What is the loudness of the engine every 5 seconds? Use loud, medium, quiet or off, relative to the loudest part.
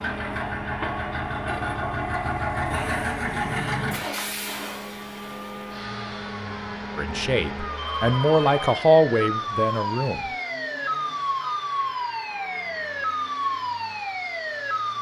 loud, medium, quiet.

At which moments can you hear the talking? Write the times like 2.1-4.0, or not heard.
7.0-10.3.